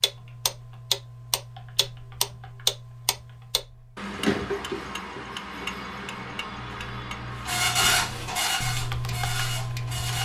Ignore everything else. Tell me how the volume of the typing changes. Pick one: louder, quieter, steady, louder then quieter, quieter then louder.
louder.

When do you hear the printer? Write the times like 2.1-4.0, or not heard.
7.5-10.1.